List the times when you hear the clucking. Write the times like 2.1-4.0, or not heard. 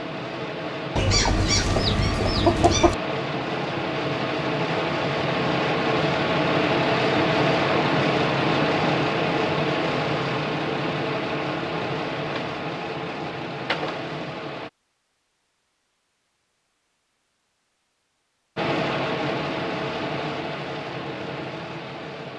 0.9-3.0.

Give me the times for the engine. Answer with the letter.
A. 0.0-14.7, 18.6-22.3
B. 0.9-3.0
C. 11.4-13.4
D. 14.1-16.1
A.